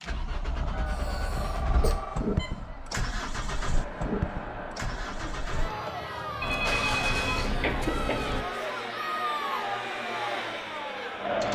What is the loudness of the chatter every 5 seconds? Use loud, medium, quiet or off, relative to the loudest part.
medium, loud, loud.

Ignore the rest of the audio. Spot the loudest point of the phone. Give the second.
7 s.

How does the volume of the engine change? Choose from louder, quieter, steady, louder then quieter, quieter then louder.
steady.